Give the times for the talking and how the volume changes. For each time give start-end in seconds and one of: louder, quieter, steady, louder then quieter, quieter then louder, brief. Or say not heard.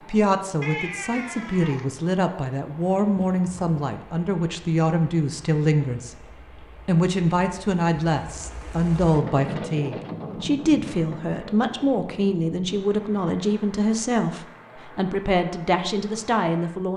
0.1-6.2 louder
6.8-16.9 steady.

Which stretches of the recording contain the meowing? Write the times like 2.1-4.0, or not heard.
0.6-1.9.